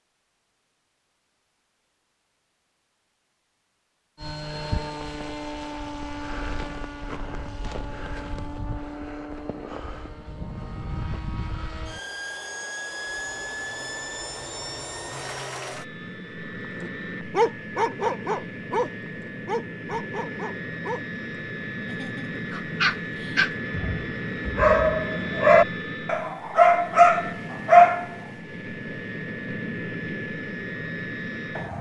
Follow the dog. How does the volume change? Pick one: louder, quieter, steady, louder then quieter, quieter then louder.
quieter then louder.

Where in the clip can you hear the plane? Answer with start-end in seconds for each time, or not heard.
4.2-31.7.